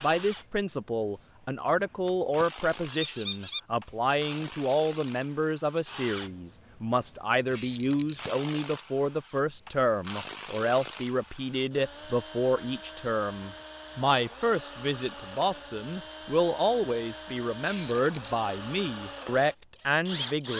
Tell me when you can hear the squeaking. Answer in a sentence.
The squeaking can be heard from 2.9 to 3.6 s, from 7.5 to 8.2 s and from 17.6 to 18.3 s.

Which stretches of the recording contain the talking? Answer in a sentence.
The talking can be heard from 0.0 to 20.5 s.